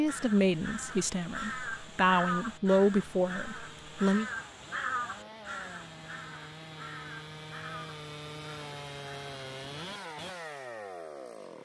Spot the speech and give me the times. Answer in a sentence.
The speech can be heard from 0.0 to 4.3 s.